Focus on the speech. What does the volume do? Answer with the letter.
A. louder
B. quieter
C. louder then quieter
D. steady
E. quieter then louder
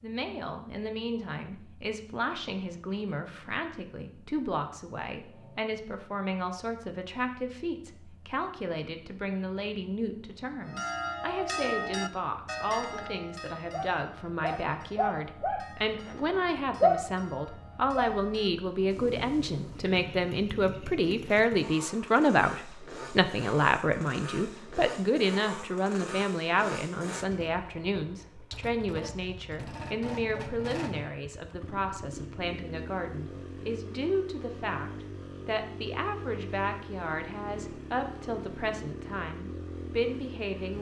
C.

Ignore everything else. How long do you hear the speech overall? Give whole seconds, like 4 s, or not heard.
41 s.